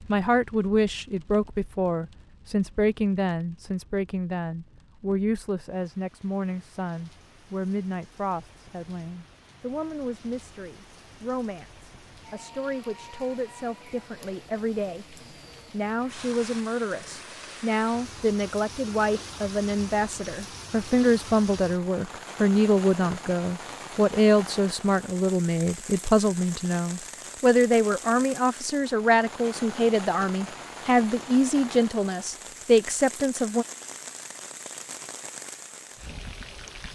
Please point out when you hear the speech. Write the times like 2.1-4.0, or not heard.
0.1-33.6.